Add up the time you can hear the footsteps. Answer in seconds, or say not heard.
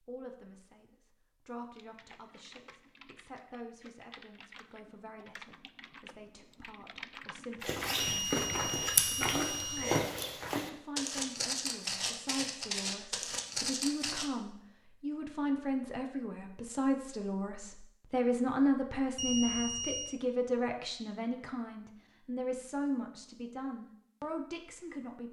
7 s.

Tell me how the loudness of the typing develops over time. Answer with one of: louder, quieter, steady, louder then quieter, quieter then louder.
louder.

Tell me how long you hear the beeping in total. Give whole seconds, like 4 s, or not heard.
3 s.